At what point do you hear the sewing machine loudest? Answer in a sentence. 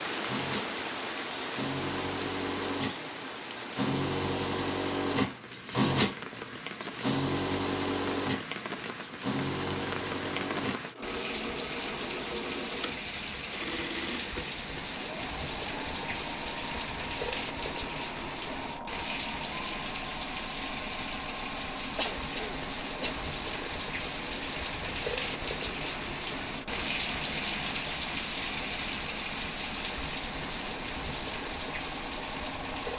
The loudest moment of the sewing machine is at 6 seconds.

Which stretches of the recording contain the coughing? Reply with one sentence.
The coughing can be heard from 21.9 to 23.2 s.